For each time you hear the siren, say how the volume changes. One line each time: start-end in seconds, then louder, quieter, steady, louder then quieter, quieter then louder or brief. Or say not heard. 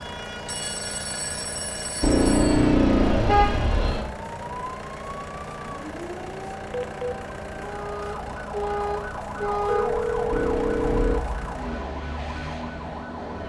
0.0-13.4 louder then quieter.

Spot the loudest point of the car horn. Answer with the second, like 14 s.
3 s.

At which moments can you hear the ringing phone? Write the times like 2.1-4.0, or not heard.
0.5-2.5, 6.7-7.2, 9.7-11.2.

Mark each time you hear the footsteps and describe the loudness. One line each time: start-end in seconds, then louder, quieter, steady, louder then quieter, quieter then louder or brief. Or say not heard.
not heard.